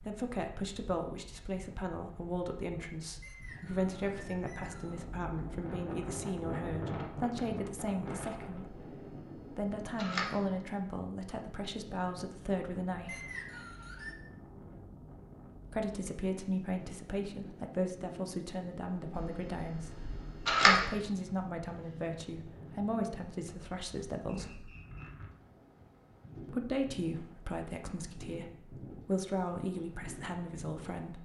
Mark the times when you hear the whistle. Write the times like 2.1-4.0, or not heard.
3.2-5.0, 13.1-14.2, 24.2-25.1.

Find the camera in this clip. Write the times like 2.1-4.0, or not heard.
8.7-10.4, 19.1-20.8.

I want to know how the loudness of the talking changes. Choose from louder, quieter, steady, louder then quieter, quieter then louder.
steady.